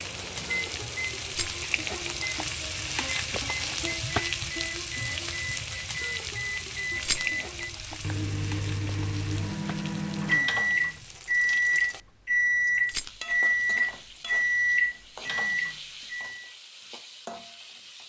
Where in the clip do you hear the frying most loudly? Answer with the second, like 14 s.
4 s.